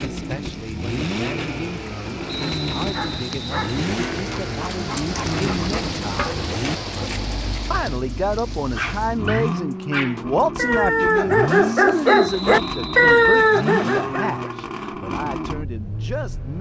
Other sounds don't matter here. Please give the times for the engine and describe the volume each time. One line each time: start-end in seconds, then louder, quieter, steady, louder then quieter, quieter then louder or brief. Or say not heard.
0.0-16.5 steady.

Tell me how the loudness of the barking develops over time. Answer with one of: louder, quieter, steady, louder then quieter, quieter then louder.
louder.